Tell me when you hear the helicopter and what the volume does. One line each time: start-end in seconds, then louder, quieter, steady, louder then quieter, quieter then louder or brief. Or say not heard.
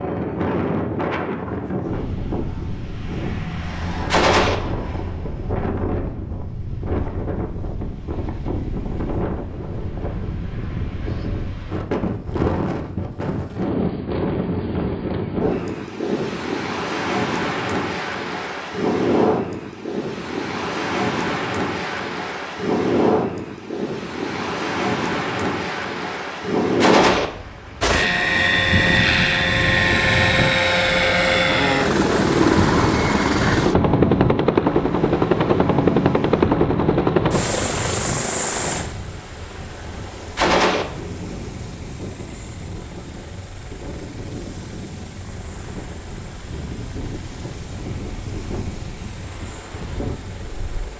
27.8-50.9 quieter.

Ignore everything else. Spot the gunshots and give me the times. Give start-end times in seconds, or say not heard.
4.1-4.6, 26.8-27.3, 40.4-40.9.